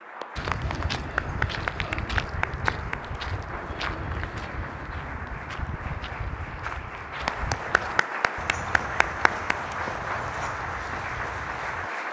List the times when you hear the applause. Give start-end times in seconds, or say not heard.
0.0-12.0.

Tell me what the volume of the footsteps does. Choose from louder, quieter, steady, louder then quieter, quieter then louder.
quieter.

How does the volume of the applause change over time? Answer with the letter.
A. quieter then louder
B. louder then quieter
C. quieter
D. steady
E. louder
A.